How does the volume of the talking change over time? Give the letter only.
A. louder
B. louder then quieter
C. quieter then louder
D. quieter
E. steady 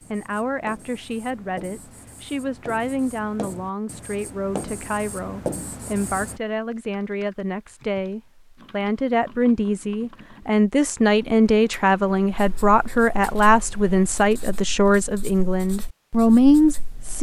A.